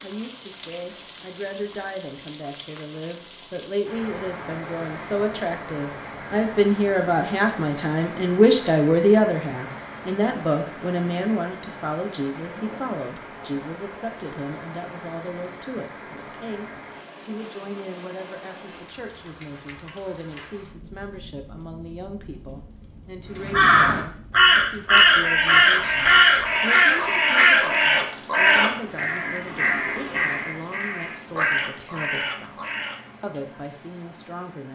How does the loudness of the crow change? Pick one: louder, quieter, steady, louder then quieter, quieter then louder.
quieter.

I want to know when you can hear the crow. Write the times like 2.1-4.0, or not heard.
23.4-33.0.